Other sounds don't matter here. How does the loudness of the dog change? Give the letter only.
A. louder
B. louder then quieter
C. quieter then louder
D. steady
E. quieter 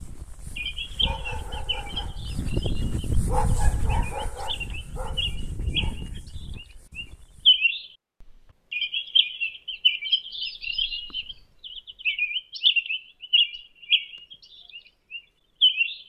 B.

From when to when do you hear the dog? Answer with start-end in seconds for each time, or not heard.
0.0-7.6.